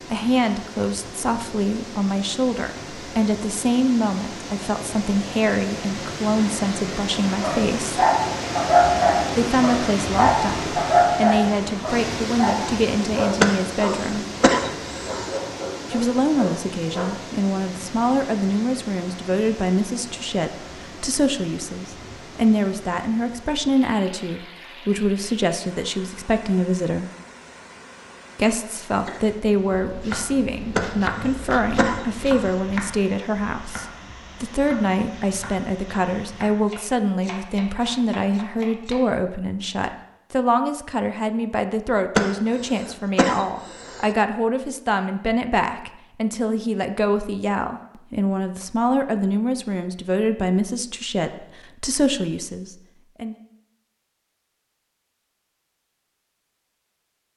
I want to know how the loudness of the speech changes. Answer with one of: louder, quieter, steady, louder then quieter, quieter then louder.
steady.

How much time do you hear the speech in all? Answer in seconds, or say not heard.
49 s.